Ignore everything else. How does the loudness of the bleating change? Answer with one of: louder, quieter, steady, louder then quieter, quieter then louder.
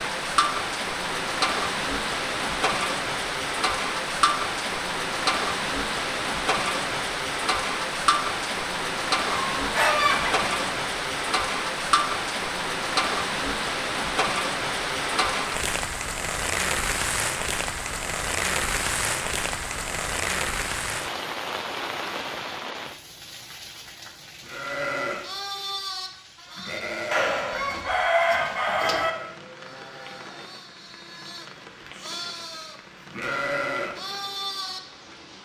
quieter then louder.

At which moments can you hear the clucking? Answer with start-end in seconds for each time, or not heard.
9.6-10.5, 27.1-29.1.